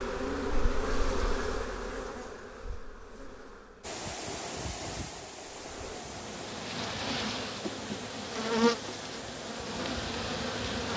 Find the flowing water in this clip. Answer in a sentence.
You can hear the flowing water from 3.8 to 10.9 s.